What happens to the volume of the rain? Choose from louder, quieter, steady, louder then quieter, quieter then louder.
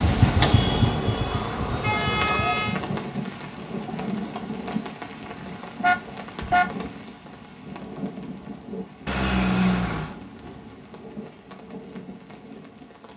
quieter.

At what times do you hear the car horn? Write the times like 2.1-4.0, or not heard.
0.4-2.8, 5.8-6.7, 9.1-10.2.